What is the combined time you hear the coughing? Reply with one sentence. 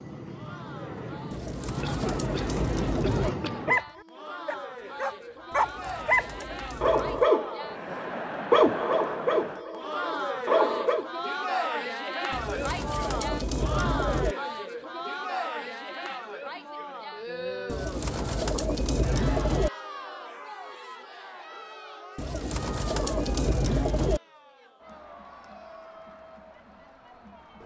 You can hear the coughing for 2 seconds altogether.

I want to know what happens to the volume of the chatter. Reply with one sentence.
The loudness of the chatter goes up, then down.